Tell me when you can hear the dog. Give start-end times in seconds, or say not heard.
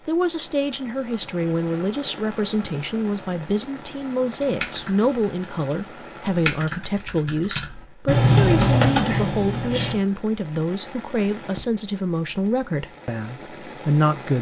not heard.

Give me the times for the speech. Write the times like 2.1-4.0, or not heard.
0.1-14.3.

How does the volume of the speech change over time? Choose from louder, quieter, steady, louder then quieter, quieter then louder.
steady.